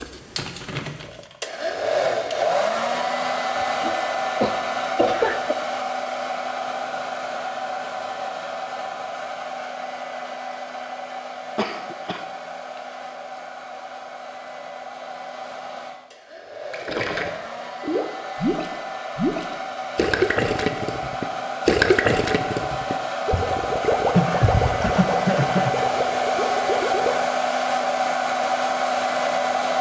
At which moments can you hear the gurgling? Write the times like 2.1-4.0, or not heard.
16.7-27.2.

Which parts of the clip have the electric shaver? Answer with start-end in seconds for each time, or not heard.
not heard.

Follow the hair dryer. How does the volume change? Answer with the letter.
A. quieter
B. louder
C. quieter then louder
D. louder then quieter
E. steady
C.